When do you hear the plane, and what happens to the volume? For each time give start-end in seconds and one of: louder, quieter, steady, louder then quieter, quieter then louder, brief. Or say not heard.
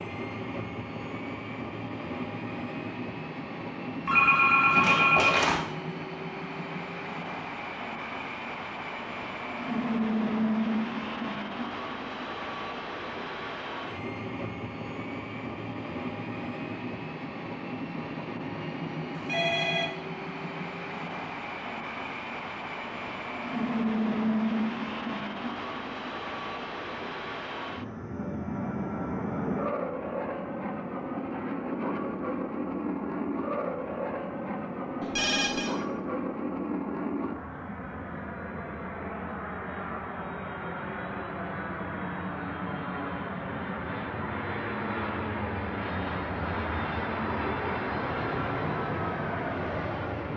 0.0-50.3 steady.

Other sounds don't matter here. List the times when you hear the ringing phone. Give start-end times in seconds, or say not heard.
4.0-5.7, 19.1-19.9, 35.0-35.7.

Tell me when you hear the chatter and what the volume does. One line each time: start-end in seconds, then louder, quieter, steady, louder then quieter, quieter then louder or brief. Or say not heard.
not heard.